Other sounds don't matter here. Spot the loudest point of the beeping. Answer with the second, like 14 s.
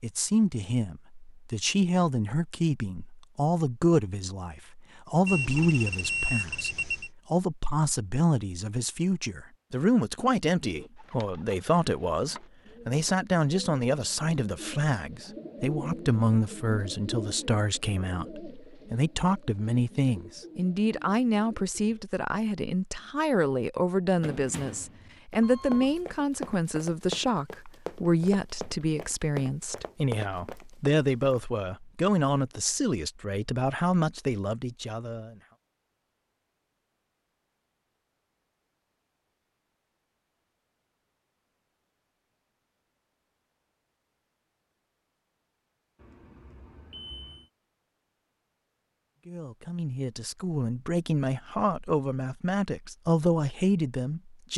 6 s.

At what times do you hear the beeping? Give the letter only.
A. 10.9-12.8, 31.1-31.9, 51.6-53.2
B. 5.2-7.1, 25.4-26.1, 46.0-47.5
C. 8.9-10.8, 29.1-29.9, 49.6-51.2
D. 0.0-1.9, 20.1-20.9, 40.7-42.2
B.